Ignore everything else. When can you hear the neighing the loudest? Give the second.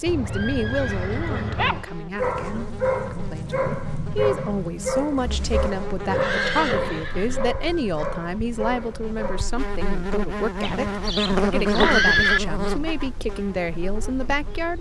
12 s.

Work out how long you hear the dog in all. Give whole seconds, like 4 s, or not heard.
8 s.